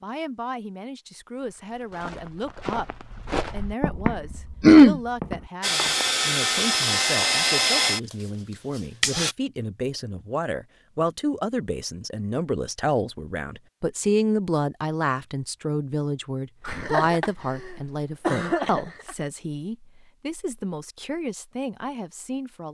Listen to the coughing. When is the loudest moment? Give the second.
5 s.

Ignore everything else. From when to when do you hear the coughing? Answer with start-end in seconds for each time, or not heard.
4.6-5.0, 16.6-19.1.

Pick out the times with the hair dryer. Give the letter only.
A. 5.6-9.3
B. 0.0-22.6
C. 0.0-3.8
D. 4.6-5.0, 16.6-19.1
A.